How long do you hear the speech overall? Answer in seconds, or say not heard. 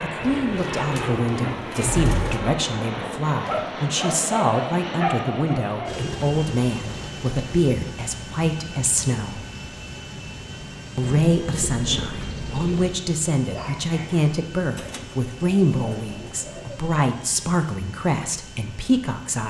18 s.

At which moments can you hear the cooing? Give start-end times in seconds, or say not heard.
0.2-2.4, 5.8-7.7, 11.0-13.0, 14.8-16.8.